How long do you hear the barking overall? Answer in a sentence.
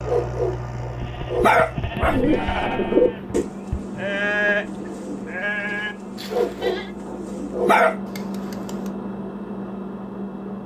You can hear the barking for 4 seconds altogether.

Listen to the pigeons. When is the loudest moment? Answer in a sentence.
The loudest moment of the pigeons is at 3 seconds.